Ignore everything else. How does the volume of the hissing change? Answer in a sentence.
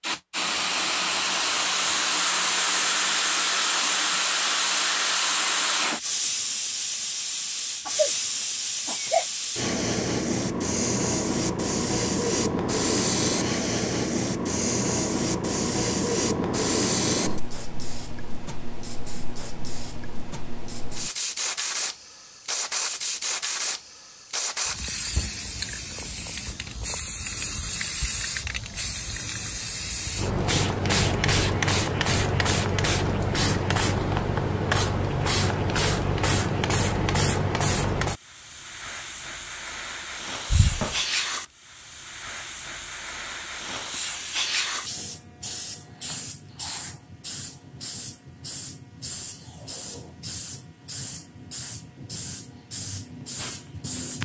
The loudness of the hissing goes down.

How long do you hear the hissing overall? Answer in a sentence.
The hissing can be heard for 54 seconds in total.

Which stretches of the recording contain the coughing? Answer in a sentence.
The coughing can be heard from 7.8 to 9.2 s and from 40.5 to 41.0 s.